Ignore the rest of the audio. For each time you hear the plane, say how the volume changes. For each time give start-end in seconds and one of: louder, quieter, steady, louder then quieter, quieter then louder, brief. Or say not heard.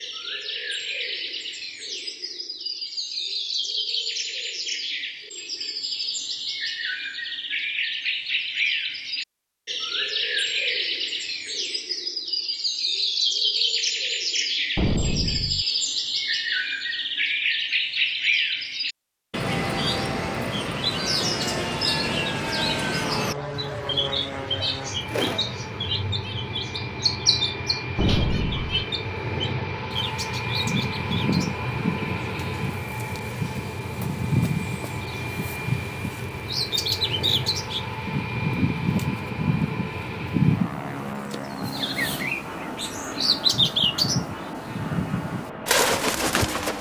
21.0-46.7 steady.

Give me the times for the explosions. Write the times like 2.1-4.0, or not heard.
14.8-15.7, 27.9-28.9.